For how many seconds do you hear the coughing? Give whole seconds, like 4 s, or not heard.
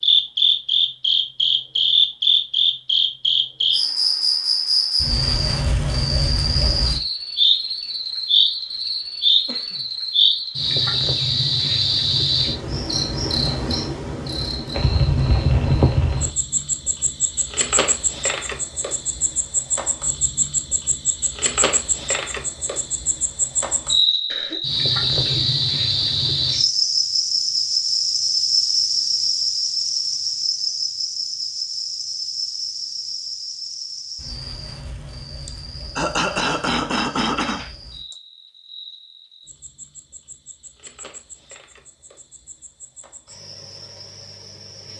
4 s.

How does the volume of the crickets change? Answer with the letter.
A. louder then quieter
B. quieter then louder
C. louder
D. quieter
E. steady
D.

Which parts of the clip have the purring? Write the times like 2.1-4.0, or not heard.
not heard.